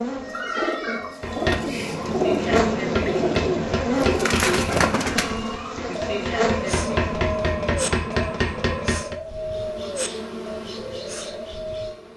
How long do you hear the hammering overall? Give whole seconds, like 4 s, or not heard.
8 s.